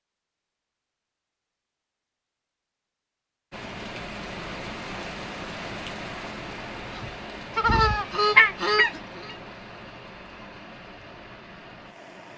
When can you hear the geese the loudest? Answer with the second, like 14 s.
8 s.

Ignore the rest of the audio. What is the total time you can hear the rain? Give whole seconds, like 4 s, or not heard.
9 s.